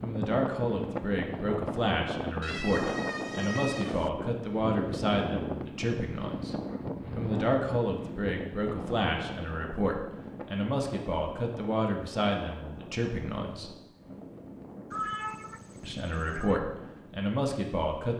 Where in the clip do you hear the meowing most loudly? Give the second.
15 s.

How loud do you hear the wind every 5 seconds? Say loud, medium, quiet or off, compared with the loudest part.
loud, loud, medium, quiet.